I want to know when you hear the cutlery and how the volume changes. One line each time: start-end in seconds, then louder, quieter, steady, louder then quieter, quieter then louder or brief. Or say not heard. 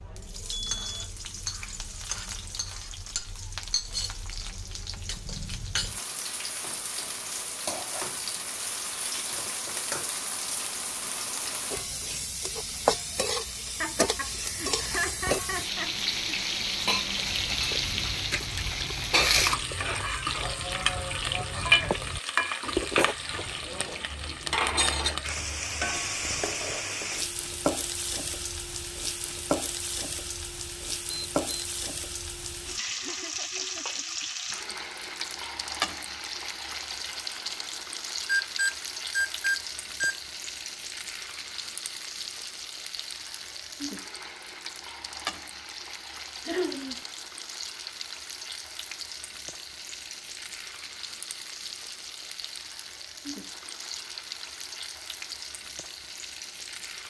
not heard.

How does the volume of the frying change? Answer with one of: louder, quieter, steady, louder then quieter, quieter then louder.
louder then quieter.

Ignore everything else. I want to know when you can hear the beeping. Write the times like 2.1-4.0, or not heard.
0.5-1.1, 31.1-31.6, 38.2-40.1.